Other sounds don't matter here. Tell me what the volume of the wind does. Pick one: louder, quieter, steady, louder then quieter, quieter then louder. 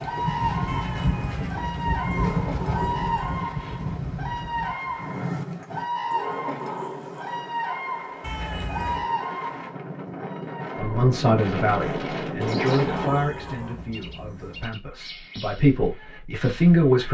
quieter then louder.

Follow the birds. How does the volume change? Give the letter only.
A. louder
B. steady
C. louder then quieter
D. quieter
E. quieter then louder
D.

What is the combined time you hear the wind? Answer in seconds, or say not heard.
13 s.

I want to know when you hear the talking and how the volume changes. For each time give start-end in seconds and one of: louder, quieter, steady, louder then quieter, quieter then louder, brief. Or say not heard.
10.8-17.0 quieter then louder.